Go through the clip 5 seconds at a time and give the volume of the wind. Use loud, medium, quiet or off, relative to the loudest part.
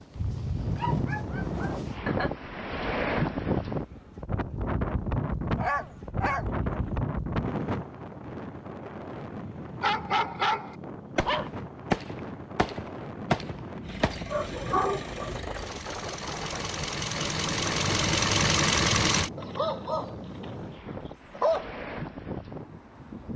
loud, loud, medium, medium, medium.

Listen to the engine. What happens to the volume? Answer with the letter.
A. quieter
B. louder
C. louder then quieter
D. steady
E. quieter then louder
B.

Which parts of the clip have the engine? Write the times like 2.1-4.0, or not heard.
13.8-19.3.